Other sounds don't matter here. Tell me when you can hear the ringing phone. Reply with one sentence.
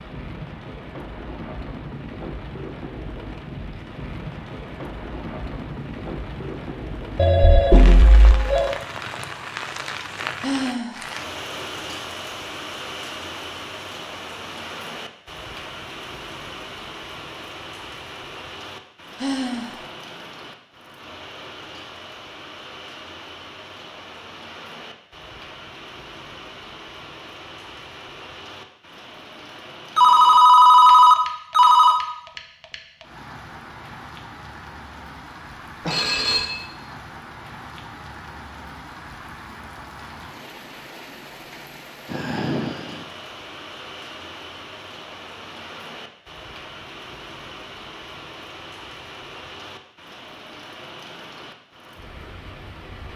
You can hear the ringing phone from 7.2 to 8.8 s, from 29.9 to 32.0 s and from 35.9 to 36.5 s.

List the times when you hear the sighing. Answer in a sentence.
The sighing can be heard from 10.4 to 11.1 s, from 19.1 to 19.9 s and from 42.0 to 43.1 s.